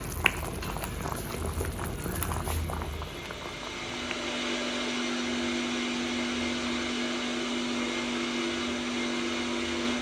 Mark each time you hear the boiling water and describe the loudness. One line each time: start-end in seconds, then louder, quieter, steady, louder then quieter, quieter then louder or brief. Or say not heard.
0.0-9.9 quieter.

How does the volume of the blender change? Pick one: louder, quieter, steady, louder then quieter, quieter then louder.
louder.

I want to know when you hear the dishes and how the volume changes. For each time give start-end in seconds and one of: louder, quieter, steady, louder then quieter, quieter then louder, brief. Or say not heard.
not heard.